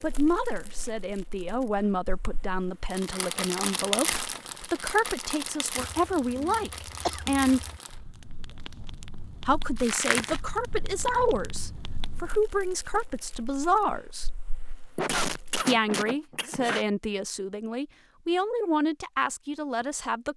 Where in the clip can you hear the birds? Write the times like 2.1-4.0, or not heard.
not heard.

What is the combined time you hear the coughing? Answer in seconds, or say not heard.
4 s.